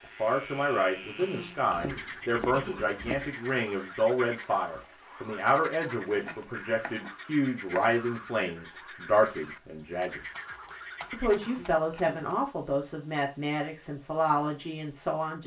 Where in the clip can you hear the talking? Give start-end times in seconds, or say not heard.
0.1-10.2, 11.1-15.4.